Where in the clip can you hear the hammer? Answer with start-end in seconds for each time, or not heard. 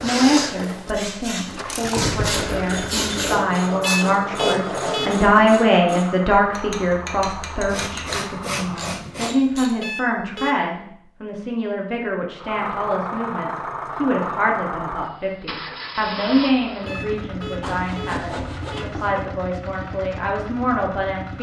not heard.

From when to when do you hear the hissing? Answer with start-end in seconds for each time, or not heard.
0.0-4.0.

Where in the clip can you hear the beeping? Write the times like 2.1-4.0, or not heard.
3.8-5.1, 9.8-10.6, 16.9-18.9.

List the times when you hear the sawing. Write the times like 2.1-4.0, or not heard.
3.2-5.2, 7.7-9.4, 17.6-19.2.